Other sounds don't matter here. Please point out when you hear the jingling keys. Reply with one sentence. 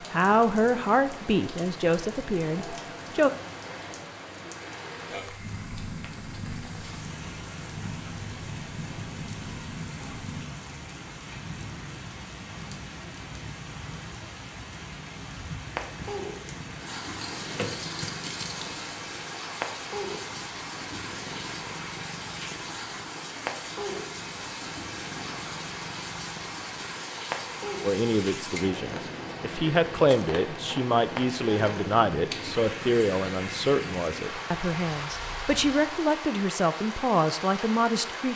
The jingling keys can be heard from 17.1 to 18.7 s.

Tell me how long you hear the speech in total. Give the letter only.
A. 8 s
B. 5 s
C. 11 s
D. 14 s
D.